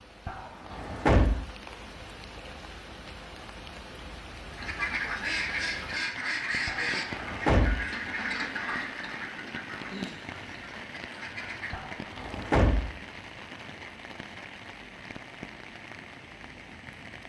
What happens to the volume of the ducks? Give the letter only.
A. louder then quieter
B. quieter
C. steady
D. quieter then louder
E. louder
B.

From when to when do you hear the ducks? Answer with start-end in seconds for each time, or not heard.
4.5-11.8.